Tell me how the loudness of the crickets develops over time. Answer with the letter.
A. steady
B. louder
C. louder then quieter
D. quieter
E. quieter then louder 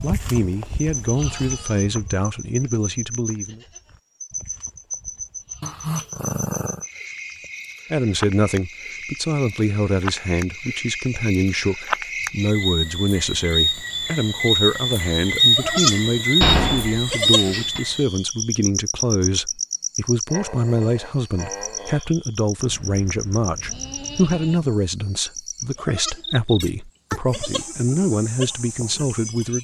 C.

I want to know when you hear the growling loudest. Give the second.
6 s.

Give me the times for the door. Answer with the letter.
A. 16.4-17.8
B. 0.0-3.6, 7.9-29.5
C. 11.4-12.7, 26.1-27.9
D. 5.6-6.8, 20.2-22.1
A.